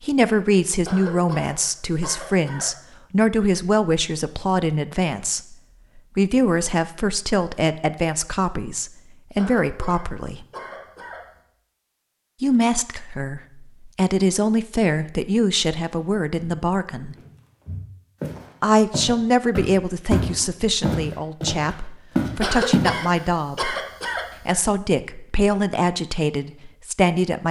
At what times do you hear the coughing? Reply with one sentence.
The coughing can be heard from 0.8 to 2.8 s, from 9.3 to 11.4 s and from 22.4 to 24.6 s.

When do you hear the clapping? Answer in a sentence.
The clapping can't be heard in this clip.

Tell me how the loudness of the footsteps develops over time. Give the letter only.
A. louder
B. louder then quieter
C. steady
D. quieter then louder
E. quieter
A.